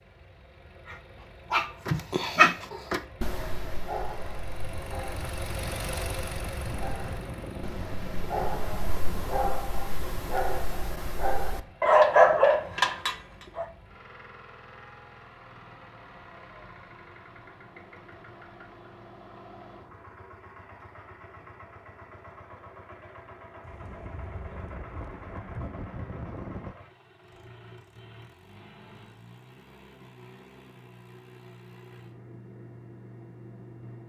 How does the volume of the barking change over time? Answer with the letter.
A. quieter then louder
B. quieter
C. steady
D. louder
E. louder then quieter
A.